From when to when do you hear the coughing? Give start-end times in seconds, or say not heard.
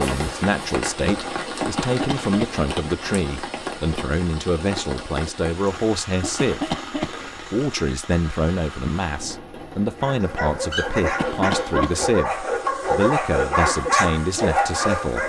1.6-2.6, 6.2-7.5, 11.0-12.1.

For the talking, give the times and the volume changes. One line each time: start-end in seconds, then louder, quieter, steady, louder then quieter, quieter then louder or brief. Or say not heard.
0.0-6.8 steady
7.4-15.2 steady.